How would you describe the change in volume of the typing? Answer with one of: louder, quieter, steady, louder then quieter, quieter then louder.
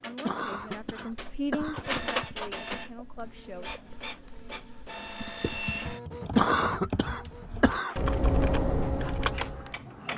quieter then louder.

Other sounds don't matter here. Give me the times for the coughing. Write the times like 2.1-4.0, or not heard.
0.2-1.9, 6.3-8.0.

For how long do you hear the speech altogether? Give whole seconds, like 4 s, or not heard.
4 s.